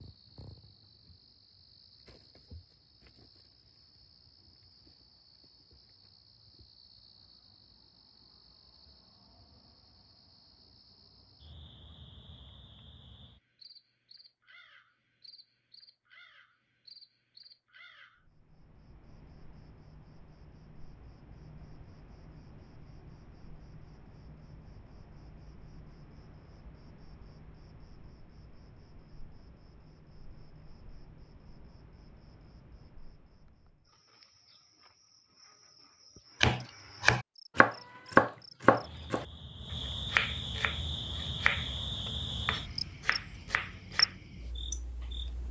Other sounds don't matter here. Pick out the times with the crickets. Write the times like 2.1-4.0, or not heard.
0.0-45.4.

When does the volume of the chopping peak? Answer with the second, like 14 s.
38 s.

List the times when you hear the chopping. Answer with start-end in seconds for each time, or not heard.
36.4-39.2, 39.9-44.1.